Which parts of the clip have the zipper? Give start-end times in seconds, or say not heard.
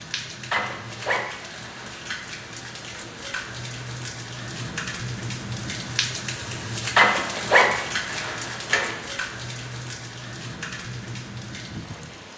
0.5-1.9, 7.0-8.9.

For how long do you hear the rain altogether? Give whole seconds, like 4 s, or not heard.
12 s.